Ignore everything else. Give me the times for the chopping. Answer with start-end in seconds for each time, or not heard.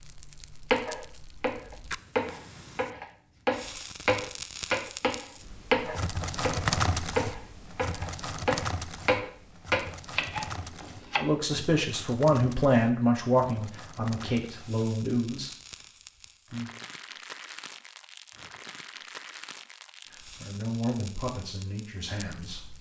0.7-11.2.